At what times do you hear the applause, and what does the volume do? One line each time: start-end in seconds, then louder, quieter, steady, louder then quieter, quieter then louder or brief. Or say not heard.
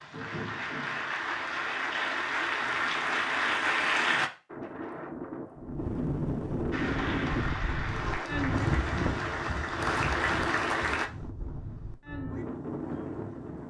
0.0-4.3 louder
6.7-11.1 louder.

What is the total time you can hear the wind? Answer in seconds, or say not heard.
9 s.